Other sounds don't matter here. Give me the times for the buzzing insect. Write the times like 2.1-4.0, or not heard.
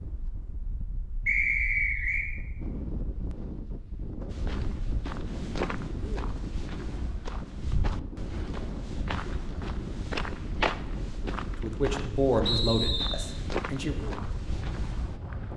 not heard.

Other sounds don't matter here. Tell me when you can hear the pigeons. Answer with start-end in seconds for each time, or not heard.
not heard.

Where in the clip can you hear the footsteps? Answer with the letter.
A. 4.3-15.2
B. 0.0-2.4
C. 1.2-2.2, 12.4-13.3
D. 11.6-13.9
A.